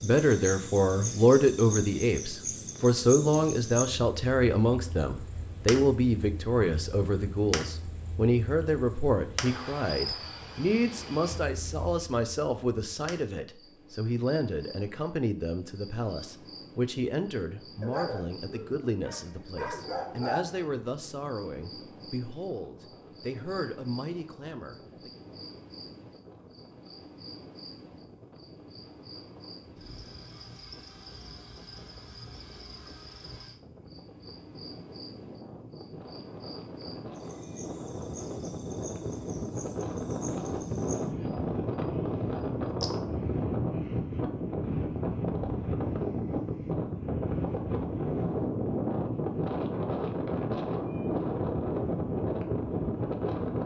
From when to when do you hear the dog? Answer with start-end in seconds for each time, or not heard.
17.8-20.7.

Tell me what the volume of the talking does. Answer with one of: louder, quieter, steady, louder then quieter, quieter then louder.
quieter.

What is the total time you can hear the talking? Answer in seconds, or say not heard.
25 s.